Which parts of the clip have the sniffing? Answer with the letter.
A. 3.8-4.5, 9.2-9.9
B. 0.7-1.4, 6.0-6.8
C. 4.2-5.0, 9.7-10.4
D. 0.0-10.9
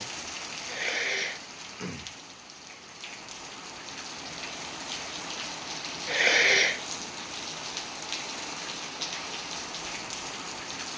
B.